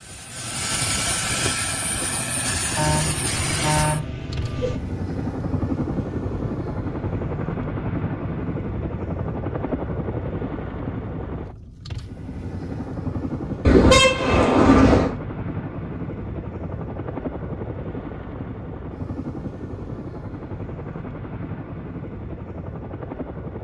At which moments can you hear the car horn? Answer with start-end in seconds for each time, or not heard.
2.8-4.8, 13.6-15.1.